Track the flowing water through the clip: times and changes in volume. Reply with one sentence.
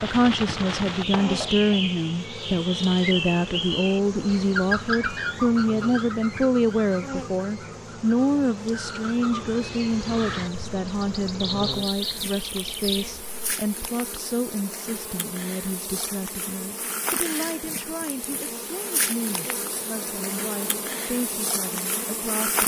You can't hear the flowing water here.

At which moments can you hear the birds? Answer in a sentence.
You can hear the birds from 0.0 to 13.3 s.